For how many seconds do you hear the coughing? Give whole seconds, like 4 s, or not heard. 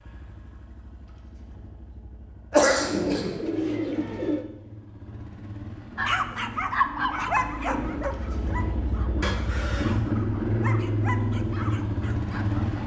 2 s.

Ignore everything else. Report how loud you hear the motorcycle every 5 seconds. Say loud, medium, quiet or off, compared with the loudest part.
quiet, medium, loud.